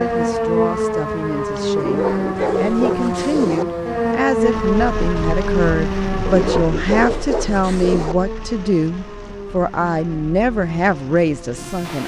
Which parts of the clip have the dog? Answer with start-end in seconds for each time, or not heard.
1.8-3.6, 6.2-8.2.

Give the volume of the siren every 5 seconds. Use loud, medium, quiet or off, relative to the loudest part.
loud, medium, quiet.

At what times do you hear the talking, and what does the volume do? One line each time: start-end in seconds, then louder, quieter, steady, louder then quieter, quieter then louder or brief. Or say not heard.
0.0-12.0 louder.